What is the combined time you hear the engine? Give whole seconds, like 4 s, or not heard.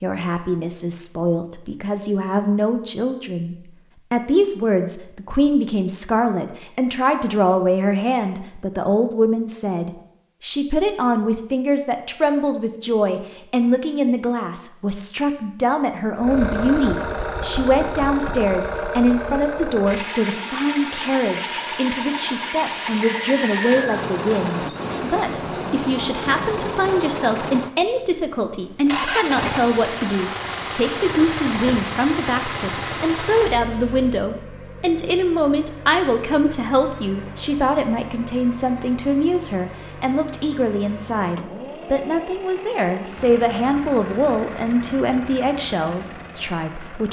31 s.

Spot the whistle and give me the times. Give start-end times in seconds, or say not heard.
23.1-24.1.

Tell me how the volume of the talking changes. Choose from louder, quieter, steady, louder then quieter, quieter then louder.
steady.